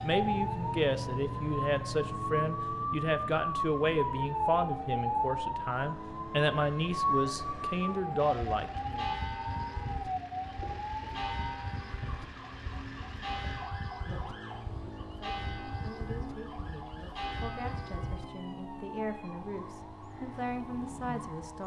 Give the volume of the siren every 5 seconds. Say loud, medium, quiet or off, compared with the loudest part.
loud, loud, medium, quiet, quiet.